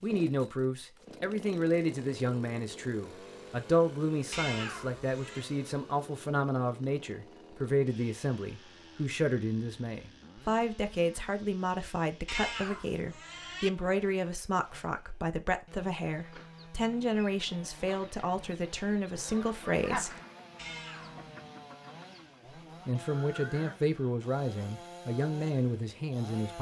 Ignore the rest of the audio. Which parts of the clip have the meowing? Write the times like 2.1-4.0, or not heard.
4.3-5.5, 12.2-13.7, 20.6-21.2.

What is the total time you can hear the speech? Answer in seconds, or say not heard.
24 s.